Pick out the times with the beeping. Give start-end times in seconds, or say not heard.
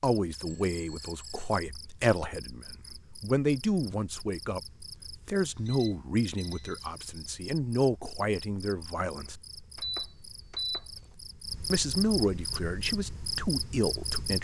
0.5-1.6, 5.4-7.2, 9.8-10.8.